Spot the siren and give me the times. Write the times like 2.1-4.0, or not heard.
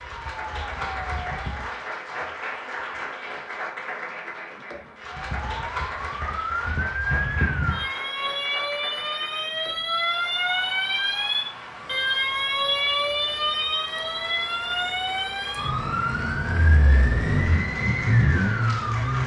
0.0-1.8, 5.0-19.2.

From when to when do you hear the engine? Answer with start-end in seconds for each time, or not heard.
16.6-19.2.